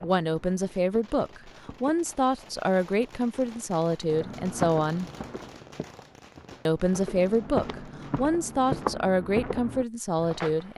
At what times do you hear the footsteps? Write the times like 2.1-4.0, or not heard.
0.0-2.2, 4.0-10.7.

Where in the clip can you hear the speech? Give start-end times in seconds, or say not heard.
0.0-5.1, 6.7-10.7.